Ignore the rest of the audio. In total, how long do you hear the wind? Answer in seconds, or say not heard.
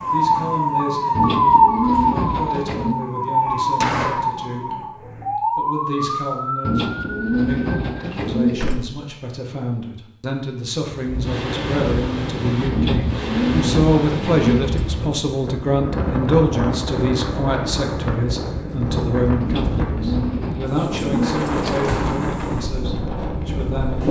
13 s.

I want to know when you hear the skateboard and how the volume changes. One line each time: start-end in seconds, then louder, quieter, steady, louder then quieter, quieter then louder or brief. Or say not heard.
not heard.